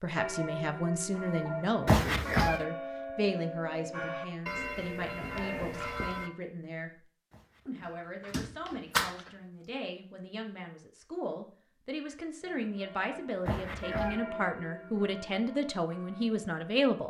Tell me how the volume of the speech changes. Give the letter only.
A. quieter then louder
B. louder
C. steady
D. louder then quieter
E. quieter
A.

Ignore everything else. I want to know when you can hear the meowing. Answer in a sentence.
The meowing can be heard from 1.9 to 2.6 s, from 8.3 to 9.2 s and from 13.4 to 14.2 s.